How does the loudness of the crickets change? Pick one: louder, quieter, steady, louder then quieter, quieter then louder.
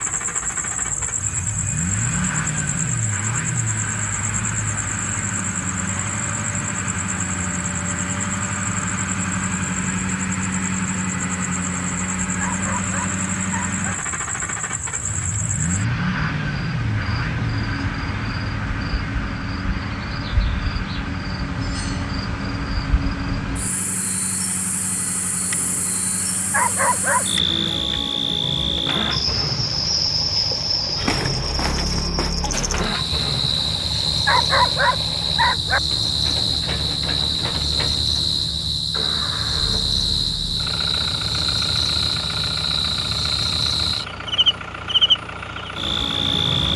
louder.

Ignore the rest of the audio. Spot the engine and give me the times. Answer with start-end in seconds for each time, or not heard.
0.0-46.7.